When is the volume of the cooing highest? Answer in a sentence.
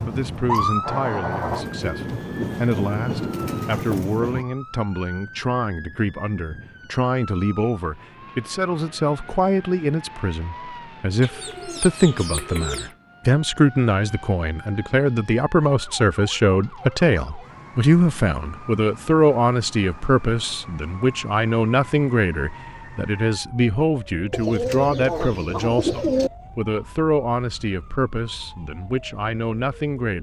The loudest moment of the cooing is at 26 seconds.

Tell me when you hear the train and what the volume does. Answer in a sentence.
You can hear the train from 0.1 to 4.5 s, at a steady volume.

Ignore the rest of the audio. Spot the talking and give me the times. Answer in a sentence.
The talking can be heard from 0.0 to 30.1 s.